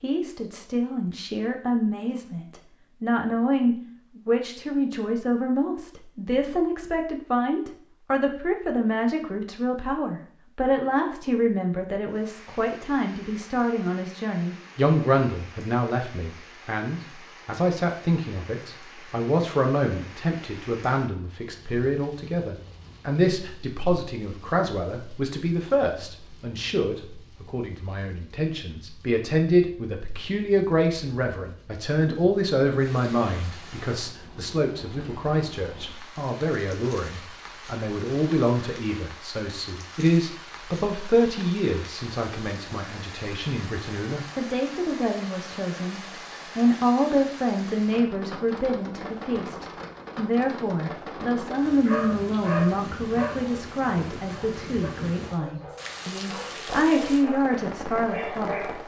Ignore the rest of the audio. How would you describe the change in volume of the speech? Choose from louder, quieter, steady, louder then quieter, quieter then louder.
steady.